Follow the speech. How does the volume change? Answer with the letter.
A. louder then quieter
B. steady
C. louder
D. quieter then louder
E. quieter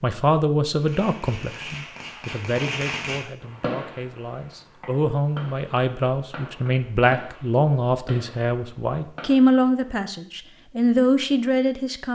D.